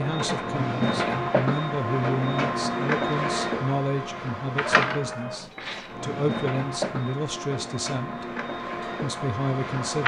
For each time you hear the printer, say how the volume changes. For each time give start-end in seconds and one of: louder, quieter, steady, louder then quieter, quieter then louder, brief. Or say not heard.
0.0-10.0 quieter.